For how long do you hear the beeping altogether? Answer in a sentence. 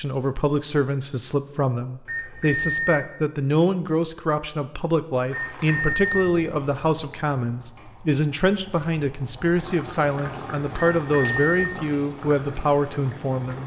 The beeping can be heard for 3 seconds in total.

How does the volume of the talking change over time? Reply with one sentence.
The volume of the talking stays about the same.